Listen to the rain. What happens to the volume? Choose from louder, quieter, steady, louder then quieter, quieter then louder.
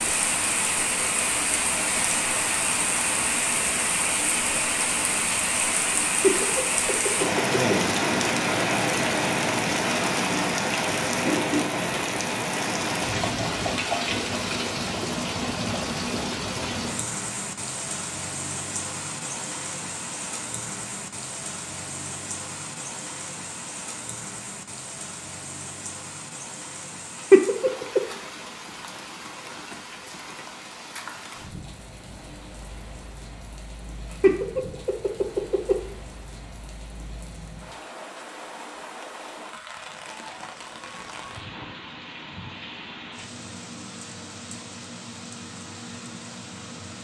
quieter.